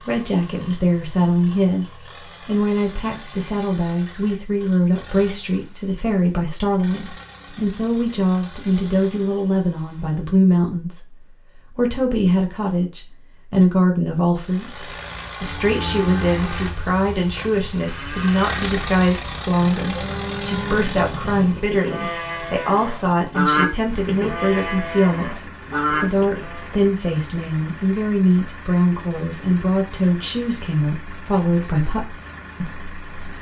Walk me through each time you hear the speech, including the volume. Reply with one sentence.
The speech can be heard from 0.1 to 33.3 s, at a steady volume.